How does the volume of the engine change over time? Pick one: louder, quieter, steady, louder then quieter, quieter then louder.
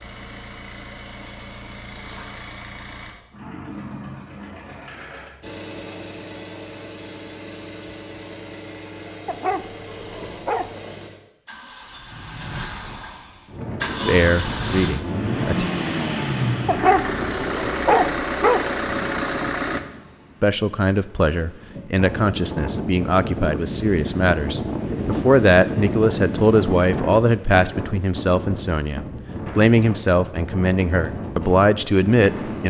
louder.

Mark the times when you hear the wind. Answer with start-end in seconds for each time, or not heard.
13.4-32.6.